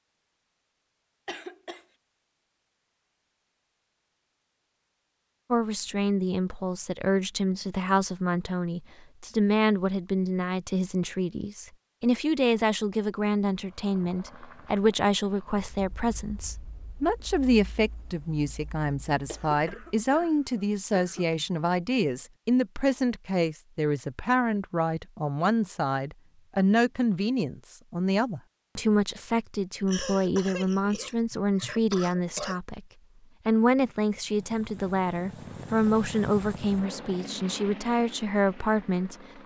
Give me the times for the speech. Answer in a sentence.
You can hear the speech from 5.5 to 32.9 s and from 33.5 to 39.4 s.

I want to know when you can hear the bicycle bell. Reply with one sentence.
You can't hear the bicycle bell here.